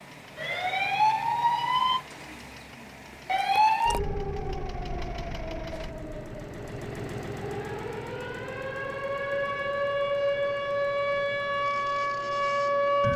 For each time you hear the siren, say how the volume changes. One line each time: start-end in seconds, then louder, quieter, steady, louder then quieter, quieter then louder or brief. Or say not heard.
0.0-13.1 quieter then louder.